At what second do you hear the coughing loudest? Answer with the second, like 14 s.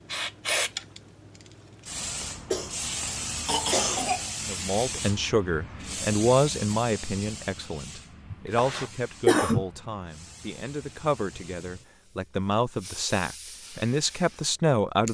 9 s.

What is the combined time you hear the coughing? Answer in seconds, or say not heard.
3 s.